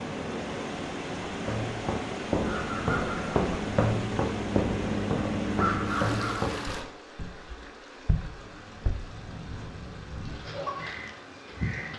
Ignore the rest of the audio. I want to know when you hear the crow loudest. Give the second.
6 s.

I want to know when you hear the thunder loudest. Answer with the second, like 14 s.
10 s.